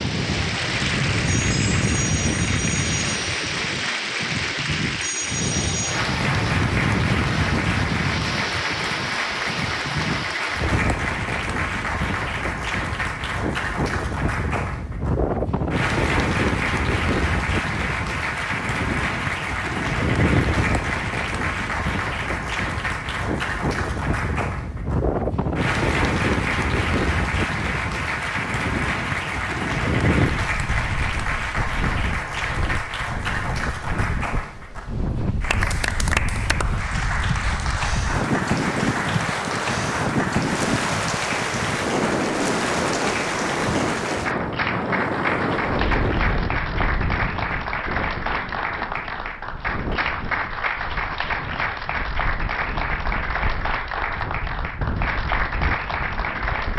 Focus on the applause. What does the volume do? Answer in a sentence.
The volume of the applause stays about the same.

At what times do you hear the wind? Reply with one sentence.
The wind can be heard from 0.0 to 56.7 s.